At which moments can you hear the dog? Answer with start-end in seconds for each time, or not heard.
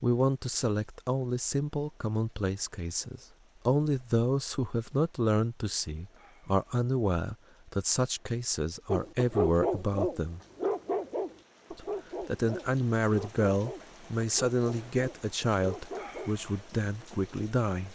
8.8-16.4.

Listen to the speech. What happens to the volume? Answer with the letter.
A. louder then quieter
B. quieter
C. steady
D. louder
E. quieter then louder
C.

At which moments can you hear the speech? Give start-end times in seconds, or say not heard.
0.0-10.4, 11.7-17.9.